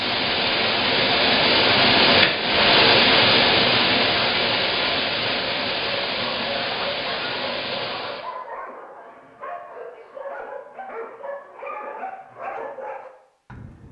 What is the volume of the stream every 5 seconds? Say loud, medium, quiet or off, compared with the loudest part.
loud, medium, off.